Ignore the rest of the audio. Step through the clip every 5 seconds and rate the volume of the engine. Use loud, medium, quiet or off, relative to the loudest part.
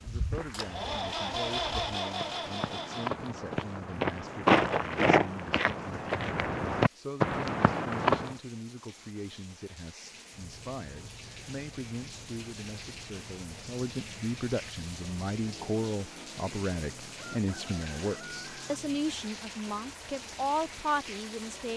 loud, off, quiet, quiet, quiet.